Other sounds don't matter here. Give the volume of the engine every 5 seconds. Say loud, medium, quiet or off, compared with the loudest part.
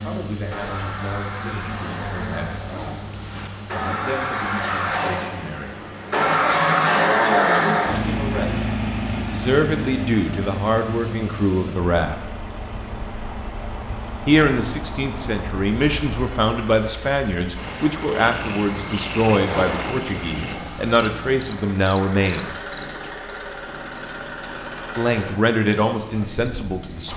medium, loud, quiet, quiet, quiet, quiet.